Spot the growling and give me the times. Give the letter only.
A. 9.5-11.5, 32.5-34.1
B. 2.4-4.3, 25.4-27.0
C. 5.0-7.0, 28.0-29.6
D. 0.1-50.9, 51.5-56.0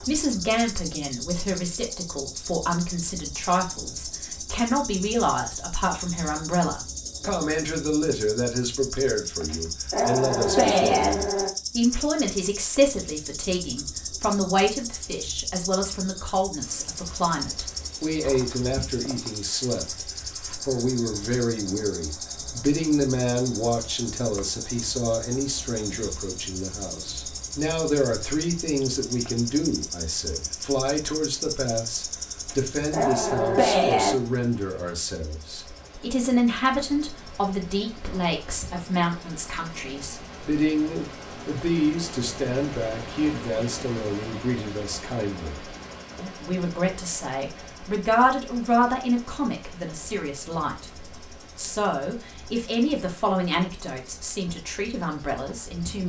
A.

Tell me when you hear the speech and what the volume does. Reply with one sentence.
The speech can be heard from 0.1 to 50.9 s, at a steady volume; and from 51.5 to 56.0 s, getting louder then quieter.